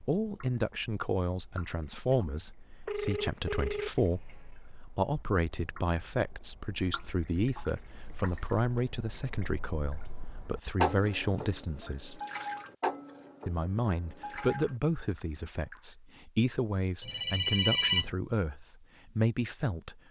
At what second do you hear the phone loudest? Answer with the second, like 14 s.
18 s.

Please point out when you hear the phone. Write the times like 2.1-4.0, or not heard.
2.9-4.5, 7.7-8.8, 17.0-18.1.